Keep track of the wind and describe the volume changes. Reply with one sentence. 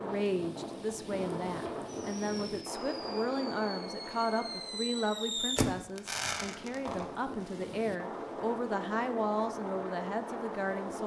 The volume of the wind goes down, then up.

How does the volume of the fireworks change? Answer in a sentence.
The loudness of the fireworks goes up, then down.